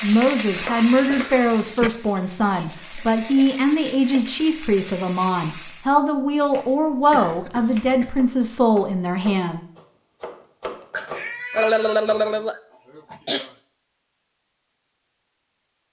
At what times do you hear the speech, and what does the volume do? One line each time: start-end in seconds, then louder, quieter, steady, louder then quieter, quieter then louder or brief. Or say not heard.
0.0-9.6 steady.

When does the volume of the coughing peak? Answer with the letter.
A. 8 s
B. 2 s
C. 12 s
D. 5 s
C.